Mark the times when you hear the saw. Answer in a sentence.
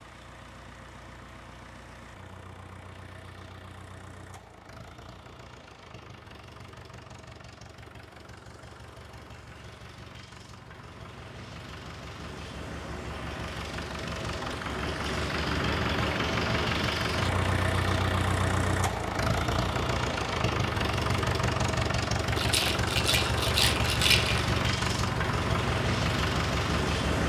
You can't hear the saw here.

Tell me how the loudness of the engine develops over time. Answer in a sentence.
The loudness of the engine goes up.